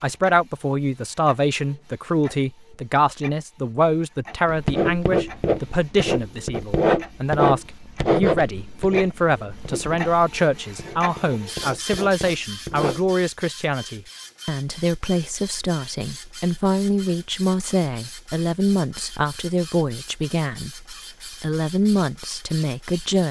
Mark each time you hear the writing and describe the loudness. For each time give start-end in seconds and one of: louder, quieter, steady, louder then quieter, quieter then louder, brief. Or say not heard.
4.5-13.1 quieter.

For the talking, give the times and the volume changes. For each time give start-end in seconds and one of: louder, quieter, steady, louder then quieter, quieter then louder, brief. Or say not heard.
0.0-23.2 steady.